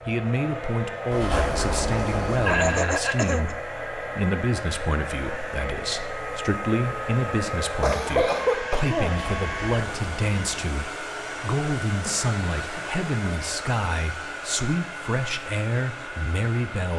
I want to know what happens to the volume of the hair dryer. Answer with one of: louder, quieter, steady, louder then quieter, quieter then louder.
steady.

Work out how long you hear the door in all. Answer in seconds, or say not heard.
3 s.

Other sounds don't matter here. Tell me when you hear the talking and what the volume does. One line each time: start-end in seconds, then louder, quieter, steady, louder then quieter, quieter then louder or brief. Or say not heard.
0.1-16.9 steady.